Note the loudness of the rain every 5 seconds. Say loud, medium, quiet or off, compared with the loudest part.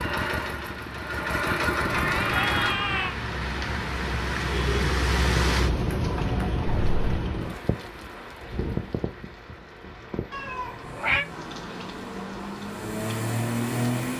loud, loud, medium.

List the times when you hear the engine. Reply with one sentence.
The engine can be heard from 0.0 to 2.8 s and from 10.8 to 14.1 s.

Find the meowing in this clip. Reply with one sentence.
You can hear the meowing from 1.8 to 3.1 s, from 6.8 to 7.2 s and from 10.3 to 11.2 s.